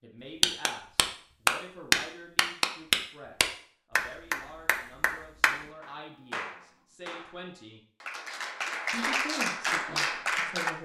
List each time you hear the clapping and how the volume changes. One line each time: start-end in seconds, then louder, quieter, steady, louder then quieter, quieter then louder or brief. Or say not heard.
0.4-10.7 quieter then louder.